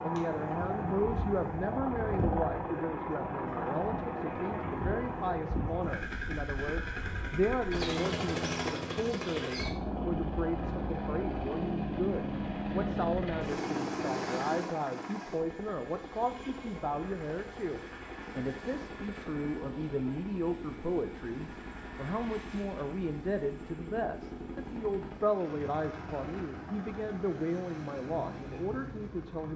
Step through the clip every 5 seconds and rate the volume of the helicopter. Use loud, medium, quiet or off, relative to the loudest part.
loud, loud, loud, medium, medium, medium.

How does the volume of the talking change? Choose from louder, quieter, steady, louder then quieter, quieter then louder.
steady.